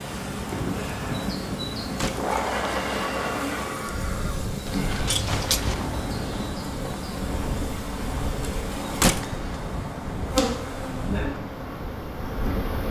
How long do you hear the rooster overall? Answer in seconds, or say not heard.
2 s.